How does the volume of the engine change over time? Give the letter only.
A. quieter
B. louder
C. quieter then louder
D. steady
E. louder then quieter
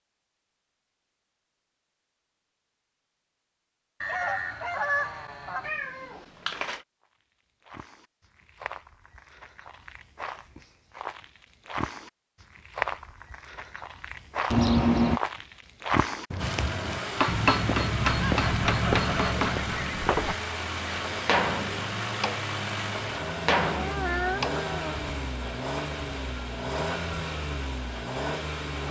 D.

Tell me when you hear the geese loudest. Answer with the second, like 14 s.
5 s.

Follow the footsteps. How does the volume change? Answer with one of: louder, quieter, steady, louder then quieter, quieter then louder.
louder.